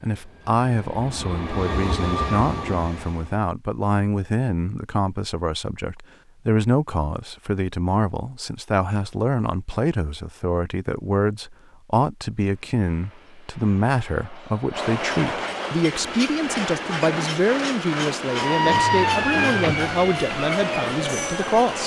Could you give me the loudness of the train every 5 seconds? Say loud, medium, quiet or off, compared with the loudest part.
loud, off, medium, loud, loud.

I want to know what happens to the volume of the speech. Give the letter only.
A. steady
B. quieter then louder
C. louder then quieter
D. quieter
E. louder
A.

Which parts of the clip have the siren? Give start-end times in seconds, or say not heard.
18.2-21.8.